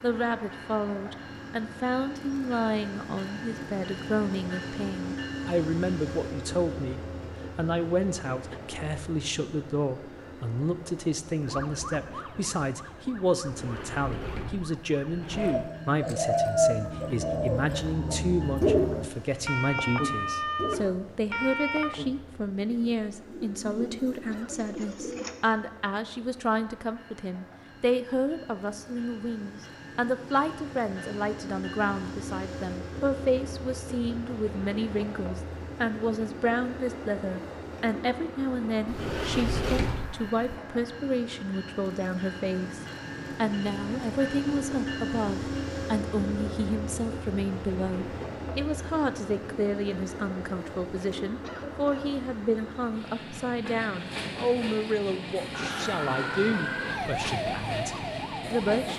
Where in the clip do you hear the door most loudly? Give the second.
40 s.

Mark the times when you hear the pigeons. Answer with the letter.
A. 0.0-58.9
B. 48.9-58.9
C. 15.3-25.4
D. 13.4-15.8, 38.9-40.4
C.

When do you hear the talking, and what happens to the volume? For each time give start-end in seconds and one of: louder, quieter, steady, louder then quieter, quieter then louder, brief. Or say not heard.
0.0-58.9 steady.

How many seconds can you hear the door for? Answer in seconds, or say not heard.
4 s.